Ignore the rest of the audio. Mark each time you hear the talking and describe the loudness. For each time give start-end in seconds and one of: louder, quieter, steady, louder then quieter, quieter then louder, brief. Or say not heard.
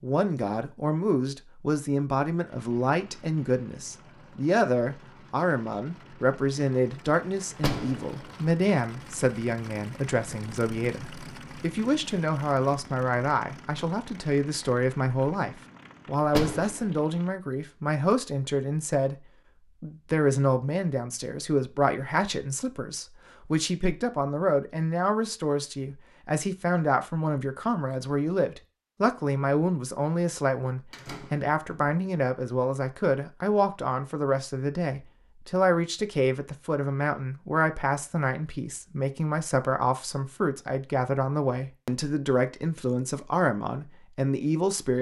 0.0-44.9 steady.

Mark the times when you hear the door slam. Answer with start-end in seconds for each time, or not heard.
7.5-8.2, 16.2-16.9, 30.9-31.9.